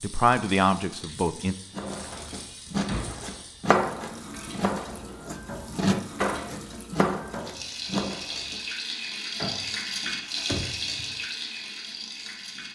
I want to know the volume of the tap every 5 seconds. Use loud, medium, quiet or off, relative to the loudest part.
medium, loud, loud.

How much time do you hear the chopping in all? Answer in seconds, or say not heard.
7 s.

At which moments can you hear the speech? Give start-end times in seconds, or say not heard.
0.0-1.6.